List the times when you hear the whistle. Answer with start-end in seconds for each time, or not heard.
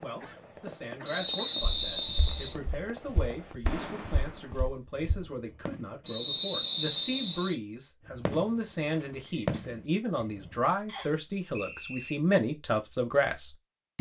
1.1-2.5, 6.0-7.5, 10.8-12.2.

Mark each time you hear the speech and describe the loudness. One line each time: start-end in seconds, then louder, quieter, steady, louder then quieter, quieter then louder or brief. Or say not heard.
0.0-13.9 louder.